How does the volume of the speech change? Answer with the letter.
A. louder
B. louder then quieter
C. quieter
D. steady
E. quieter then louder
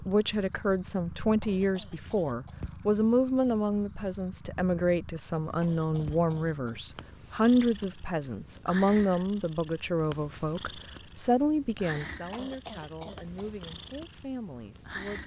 C.